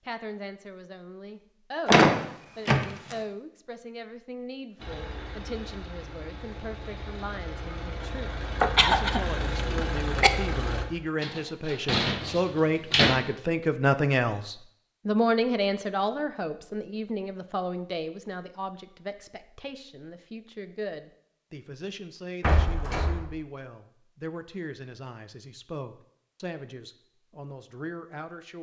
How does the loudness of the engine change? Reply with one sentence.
The volume of the engine goes up.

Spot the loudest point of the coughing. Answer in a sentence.
The loudest moment of the coughing is at 9 seconds.